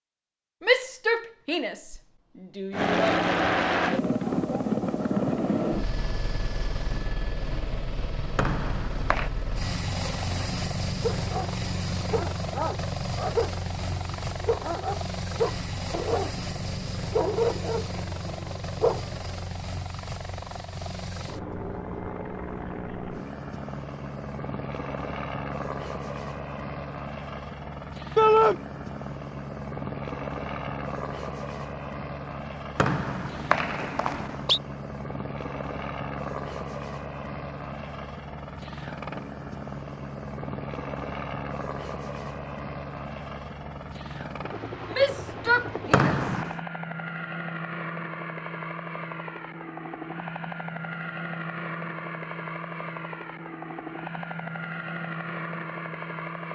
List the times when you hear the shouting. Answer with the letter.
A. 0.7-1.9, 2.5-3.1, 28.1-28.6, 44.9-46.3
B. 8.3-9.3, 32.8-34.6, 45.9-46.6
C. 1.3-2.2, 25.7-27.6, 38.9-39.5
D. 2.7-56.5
A.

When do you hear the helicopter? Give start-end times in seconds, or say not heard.
2.7-56.5.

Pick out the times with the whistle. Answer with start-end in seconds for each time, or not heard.
8.3-9.3, 32.8-34.6, 45.9-46.6.